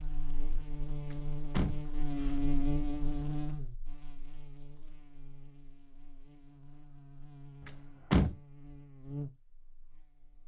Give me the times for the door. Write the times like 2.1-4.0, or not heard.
1.1-2.3, 7.7-8.3.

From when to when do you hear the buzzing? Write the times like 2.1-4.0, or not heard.
0.0-10.4.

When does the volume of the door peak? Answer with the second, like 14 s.
8 s.